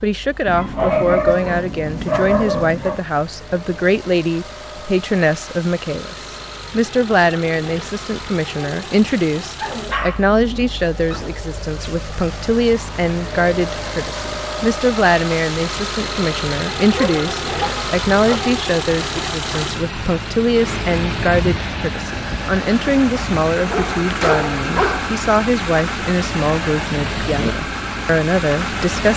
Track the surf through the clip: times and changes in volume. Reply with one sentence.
The surf can't be heard in this clip.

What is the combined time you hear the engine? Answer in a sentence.
The engine can be heard for 29 seconds in total.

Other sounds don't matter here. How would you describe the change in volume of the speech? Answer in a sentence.
The loudness of the speech stays about the same.